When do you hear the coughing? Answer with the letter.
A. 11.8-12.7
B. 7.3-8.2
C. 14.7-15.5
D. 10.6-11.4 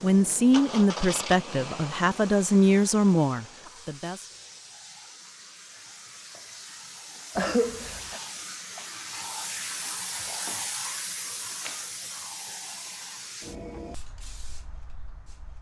B.